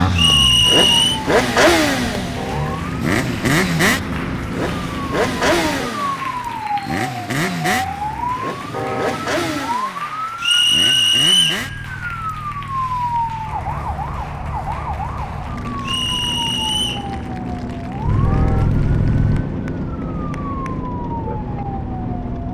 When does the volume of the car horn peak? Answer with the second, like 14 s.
9 s.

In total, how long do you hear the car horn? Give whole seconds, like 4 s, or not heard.
2 s.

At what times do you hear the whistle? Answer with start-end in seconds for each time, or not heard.
0.1-1.2, 10.4-11.7, 15.8-17.1.